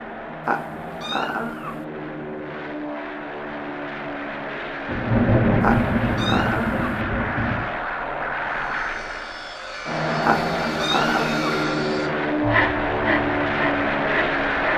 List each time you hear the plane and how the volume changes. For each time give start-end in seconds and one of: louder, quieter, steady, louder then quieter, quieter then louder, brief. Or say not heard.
0.0-14.7 louder.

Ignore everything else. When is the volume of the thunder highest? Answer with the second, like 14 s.
5 s.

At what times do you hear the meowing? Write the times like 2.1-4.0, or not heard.
0.5-1.9, 5.6-7.0, 10.2-11.4.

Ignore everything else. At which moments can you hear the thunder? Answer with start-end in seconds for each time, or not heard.
4.8-7.7.